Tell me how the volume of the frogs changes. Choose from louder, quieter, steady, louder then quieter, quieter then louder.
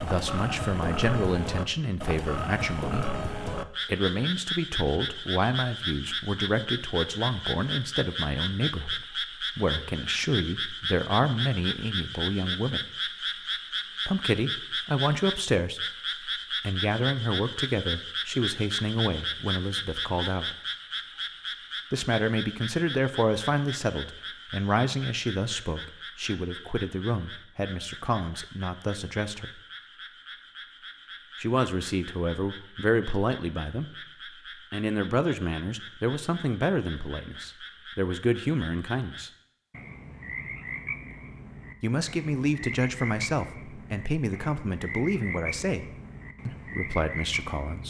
quieter then louder.